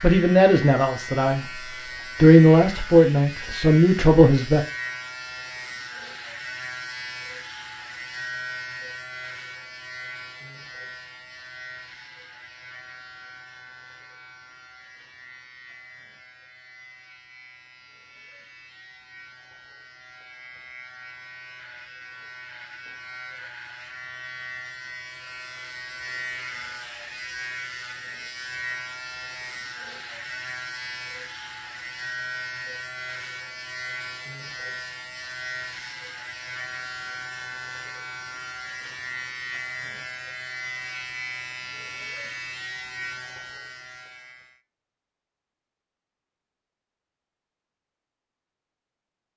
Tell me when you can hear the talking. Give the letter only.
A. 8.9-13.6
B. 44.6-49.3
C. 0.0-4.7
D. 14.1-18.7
C.